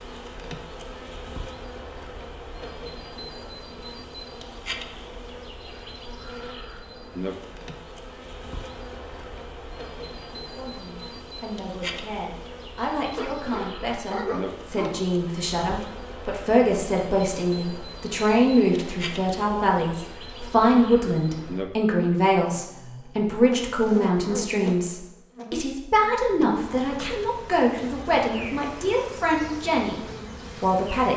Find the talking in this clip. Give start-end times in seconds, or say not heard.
10.6-31.1.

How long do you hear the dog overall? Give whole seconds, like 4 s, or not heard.
2 s.